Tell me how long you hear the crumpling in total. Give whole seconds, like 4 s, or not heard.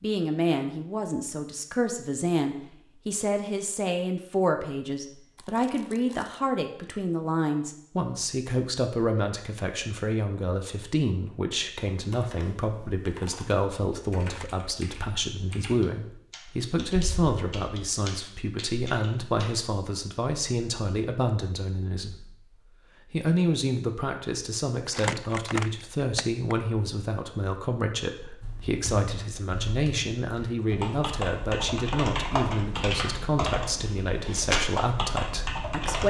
3 s.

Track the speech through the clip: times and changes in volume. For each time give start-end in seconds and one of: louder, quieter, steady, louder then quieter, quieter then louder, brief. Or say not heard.
0.0-36.0 steady.